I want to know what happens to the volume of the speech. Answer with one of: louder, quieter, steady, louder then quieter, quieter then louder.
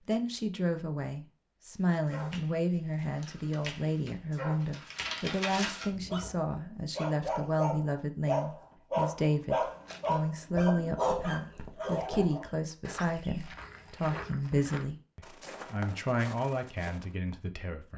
steady.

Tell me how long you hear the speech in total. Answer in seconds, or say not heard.
18 s.